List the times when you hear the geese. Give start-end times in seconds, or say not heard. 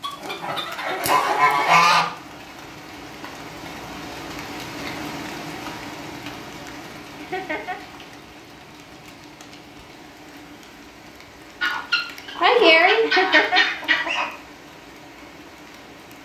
0.0-2.0, 11.6-14.2.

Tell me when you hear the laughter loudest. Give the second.
13 s.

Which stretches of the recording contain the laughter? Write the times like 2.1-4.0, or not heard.
0.8-1.2, 7.2-7.8, 13.0-13.6.